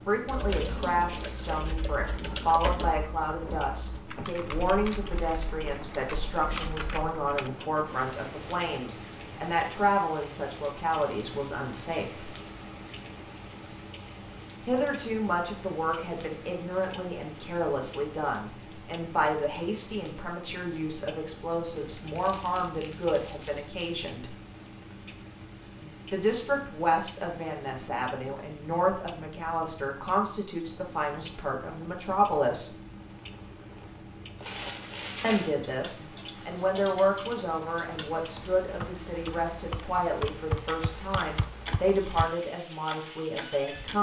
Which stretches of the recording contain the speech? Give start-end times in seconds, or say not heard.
0.1-12.3, 14.7-24.4, 26.1-32.8, 35.2-43.9.